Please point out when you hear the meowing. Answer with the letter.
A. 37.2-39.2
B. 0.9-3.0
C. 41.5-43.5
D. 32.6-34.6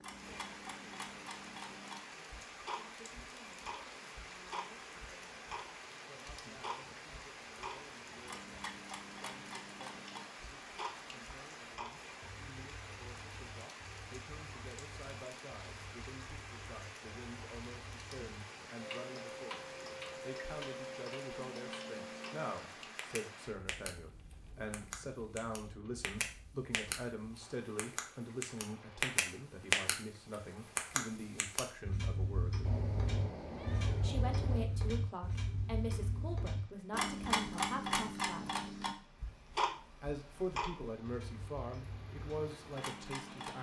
D.